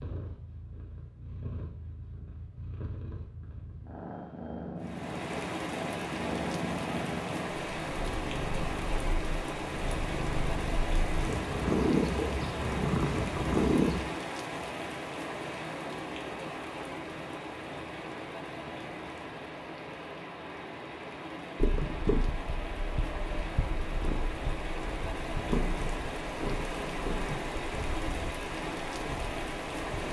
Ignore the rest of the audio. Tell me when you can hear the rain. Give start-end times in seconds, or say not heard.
4.8-30.0.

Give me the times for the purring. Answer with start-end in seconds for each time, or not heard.
0.0-14.1, 21.6-30.0.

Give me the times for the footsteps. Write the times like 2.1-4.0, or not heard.
not heard.